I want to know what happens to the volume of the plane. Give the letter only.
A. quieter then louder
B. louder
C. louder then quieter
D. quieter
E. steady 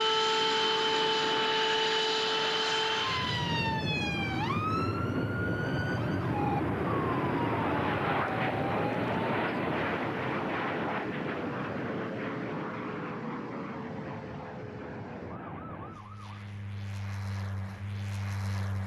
D.